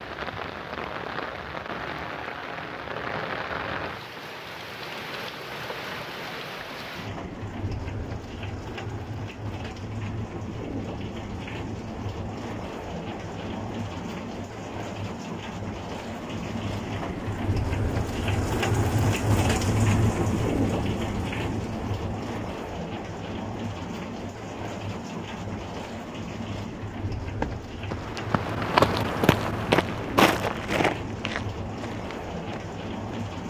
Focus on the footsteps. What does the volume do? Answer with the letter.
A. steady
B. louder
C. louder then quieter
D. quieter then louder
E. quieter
C.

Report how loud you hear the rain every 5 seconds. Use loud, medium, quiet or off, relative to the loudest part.
medium, medium, medium, loud, loud, medium, medium.